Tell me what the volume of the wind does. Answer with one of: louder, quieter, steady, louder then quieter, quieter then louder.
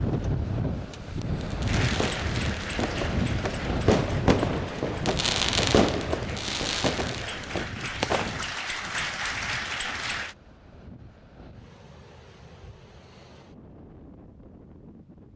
quieter.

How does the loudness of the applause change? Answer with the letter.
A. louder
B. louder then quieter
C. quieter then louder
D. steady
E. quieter
C.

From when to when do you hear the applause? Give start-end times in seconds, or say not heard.
1.6-10.3.